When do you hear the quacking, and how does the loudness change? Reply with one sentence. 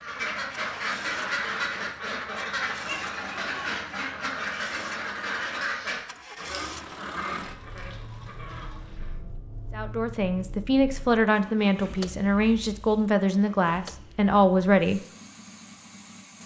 You can hear the quacking from 0.0 to 9.2 s, getting quieter.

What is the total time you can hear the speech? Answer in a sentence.
The speech can be heard for 5 seconds in total.